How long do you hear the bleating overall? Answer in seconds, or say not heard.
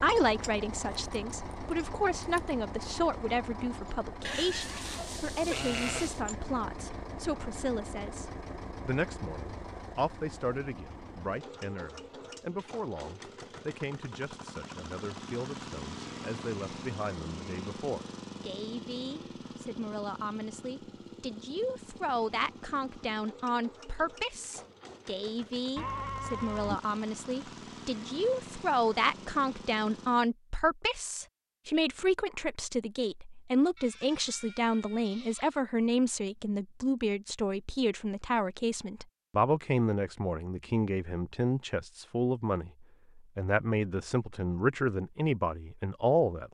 5 s.